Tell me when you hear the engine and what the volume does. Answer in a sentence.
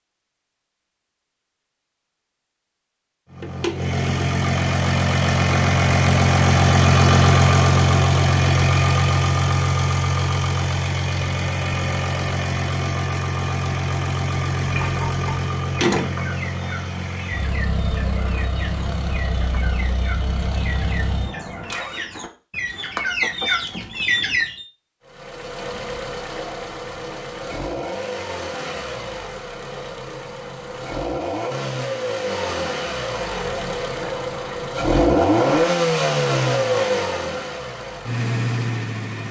You can hear the engine from 3.3 to 22.1 s, getting quieter; and from 25.1 to 39.2 s, getting louder.